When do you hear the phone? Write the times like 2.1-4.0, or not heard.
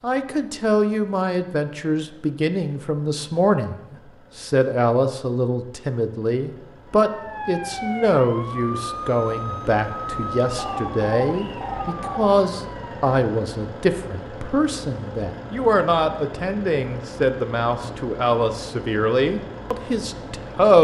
10.6-12.2.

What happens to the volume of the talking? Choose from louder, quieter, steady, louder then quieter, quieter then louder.
steady.